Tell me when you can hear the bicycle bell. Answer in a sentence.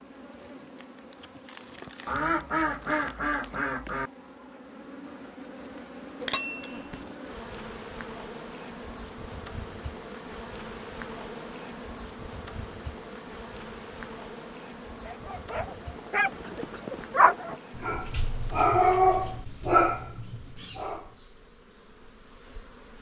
You can hear the bicycle bell from 6.2 to 7.0 s.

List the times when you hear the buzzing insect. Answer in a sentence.
You can hear the buzzing insect from 0.0 to 22.9 s.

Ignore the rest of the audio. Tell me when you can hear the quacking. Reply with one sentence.
You can hear the quacking from 2.0 to 4.1 s.